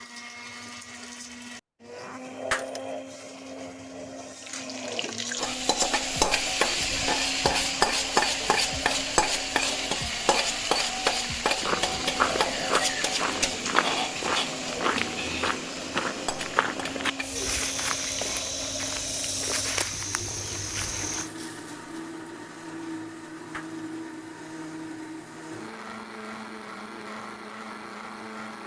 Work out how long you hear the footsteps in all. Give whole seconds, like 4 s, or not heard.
10 s.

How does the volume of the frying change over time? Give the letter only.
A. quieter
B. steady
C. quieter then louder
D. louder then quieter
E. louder
A.